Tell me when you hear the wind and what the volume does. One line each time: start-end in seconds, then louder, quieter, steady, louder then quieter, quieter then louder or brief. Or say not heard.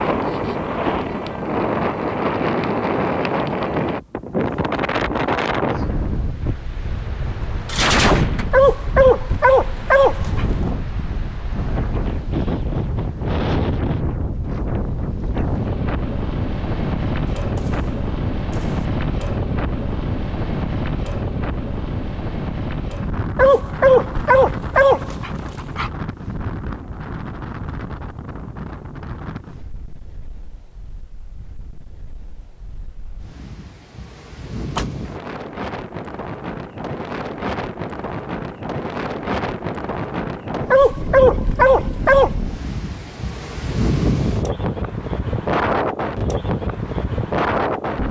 0.0-48.0 quieter then louder.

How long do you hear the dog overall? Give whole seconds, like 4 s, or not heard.
6 s.